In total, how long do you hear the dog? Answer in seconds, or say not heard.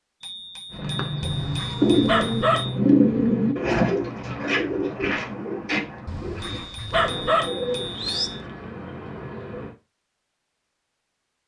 4 s.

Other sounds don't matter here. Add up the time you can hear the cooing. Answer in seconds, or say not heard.
9 s.